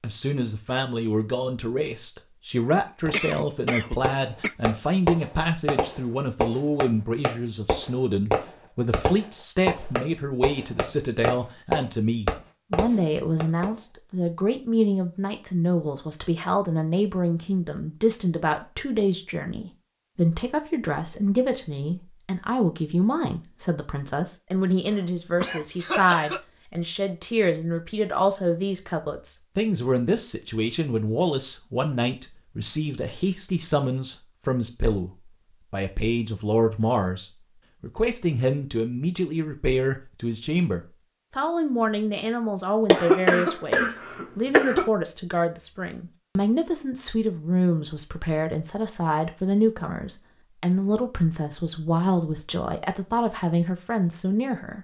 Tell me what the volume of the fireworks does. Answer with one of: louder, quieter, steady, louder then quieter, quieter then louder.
steady.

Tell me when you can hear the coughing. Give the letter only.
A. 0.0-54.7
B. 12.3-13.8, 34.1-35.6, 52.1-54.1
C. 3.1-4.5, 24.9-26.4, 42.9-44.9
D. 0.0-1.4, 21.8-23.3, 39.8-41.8
C.